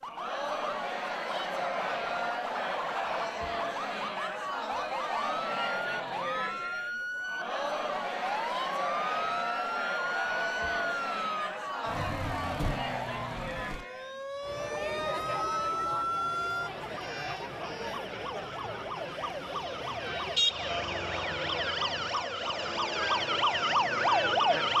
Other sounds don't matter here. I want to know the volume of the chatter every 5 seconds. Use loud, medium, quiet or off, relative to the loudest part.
loud, loud, loud, medium, medium.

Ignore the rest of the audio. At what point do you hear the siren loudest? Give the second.
24 s.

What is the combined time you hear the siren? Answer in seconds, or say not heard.
25 s.